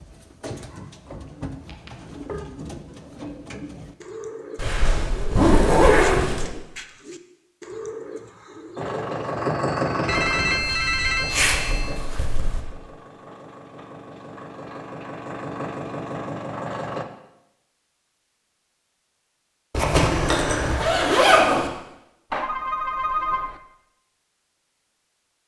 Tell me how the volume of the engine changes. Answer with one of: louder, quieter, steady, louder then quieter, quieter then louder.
quieter then louder.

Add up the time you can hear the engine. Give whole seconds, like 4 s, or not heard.
8 s.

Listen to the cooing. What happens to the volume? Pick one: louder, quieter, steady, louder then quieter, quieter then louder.
steady.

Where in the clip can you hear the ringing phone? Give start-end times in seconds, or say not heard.
0.7-2.5, 10.1-12.1, 22.3-23.6.